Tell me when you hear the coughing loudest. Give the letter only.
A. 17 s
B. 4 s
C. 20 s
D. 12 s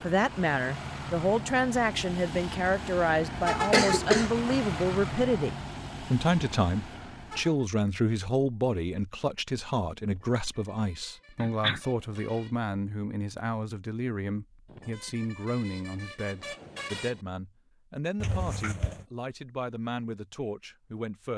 B.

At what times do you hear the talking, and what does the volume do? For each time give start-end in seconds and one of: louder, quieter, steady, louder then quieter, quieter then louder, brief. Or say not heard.
0.0-21.3 quieter.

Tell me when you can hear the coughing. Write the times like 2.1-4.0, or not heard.
3.7-4.3, 11.4-11.8, 18.2-19.1.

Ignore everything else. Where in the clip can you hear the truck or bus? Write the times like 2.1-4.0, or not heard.
0.0-7.7.